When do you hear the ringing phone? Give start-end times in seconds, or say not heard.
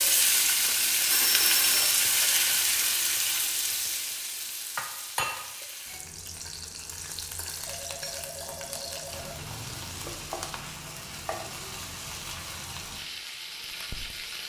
0.7-2.5, 7.7-9.7.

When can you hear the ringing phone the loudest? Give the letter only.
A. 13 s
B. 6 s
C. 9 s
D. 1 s
D.